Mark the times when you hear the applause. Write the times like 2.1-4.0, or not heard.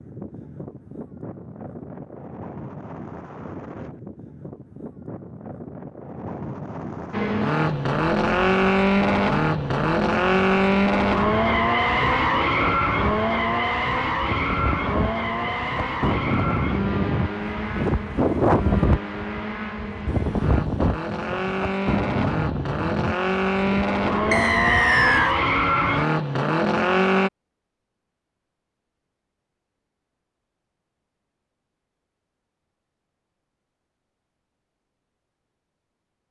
not heard.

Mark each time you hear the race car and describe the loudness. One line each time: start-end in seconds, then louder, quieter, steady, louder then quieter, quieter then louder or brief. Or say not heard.
7.1-27.3 quieter then louder.